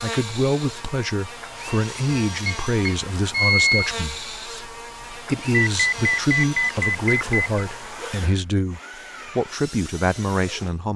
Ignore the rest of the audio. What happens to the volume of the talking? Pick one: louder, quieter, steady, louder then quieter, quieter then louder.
steady.